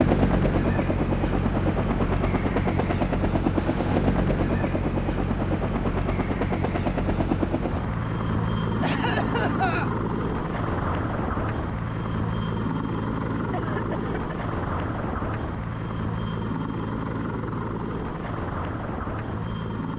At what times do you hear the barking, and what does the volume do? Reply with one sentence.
The barking can't be heard in this clip.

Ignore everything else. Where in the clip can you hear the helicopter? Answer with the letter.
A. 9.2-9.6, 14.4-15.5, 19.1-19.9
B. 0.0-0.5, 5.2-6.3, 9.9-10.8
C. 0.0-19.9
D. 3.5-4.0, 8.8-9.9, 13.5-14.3
C.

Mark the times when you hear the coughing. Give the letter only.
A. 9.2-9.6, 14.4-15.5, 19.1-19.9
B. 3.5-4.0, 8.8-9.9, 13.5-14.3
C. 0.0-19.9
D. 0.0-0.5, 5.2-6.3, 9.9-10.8
B.